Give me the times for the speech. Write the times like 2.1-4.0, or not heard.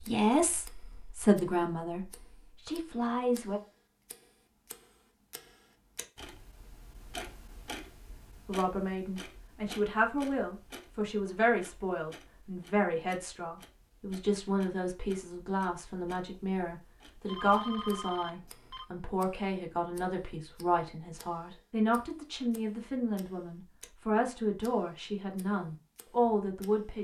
0.0-3.6, 8.4-26.9.